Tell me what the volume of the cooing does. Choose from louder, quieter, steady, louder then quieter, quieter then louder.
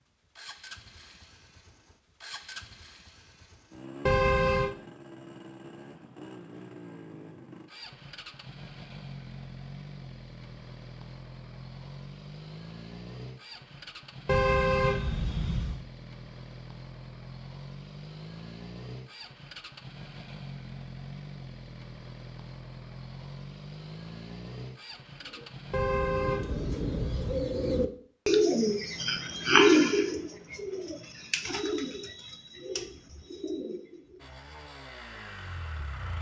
louder then quieter.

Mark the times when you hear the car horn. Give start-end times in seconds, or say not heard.
4.0-4.8, 14.2-15.8, 25.7-27.5.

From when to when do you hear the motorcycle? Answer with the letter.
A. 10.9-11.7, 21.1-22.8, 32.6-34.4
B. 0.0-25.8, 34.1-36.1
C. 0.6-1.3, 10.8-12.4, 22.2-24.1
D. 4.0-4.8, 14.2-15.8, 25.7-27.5
B.